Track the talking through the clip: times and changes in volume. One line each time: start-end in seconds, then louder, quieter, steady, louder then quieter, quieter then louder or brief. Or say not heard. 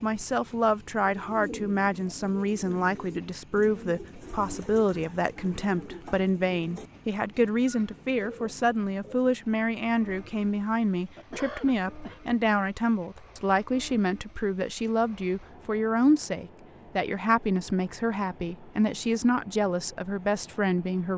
0.0-21.1 steady.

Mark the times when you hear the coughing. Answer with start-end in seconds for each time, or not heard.
11.2-12.2.